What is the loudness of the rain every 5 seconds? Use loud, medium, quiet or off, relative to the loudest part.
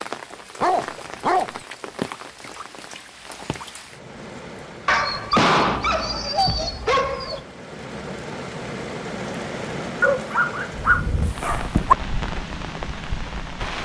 medium, loud, loud.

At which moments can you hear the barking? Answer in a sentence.
You can hear the barking from 0.6 to 1.6 s, from 4.8 to 7.4 s and from 10.0 to 11.9 s.